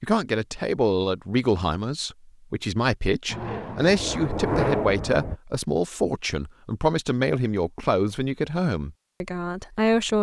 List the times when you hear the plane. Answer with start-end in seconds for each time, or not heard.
3.2-5.4.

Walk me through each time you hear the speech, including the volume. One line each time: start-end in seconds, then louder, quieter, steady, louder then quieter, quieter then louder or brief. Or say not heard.
0.0-10.1 steady.